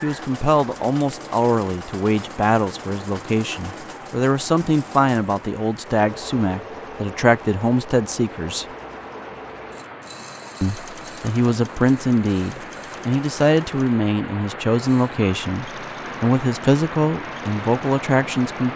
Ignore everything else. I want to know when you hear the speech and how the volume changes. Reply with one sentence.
The speech can be heard from 0.0 to 8.7 s, at a steady volume; and from 10.6 to 18.7 s, at a steady volume.